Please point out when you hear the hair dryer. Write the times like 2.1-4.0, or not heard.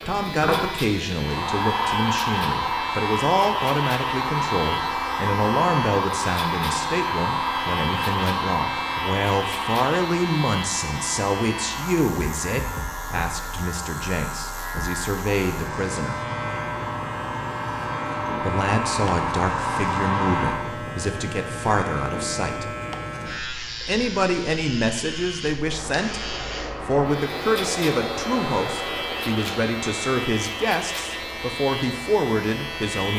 0.0-20.6, 25.6-33.0.